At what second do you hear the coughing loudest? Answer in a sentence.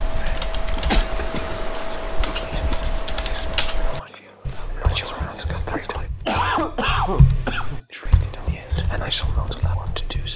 The volume of the coughing peaks at 6 seconds.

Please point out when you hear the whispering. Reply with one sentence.
The whispering can be heard from 0.0 to 6.0 s and from 7.9 to 10.3 s.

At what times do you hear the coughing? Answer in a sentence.
The coughing can be heard from 0.9 to 1.4 s and from 5.7 to 7.8 s.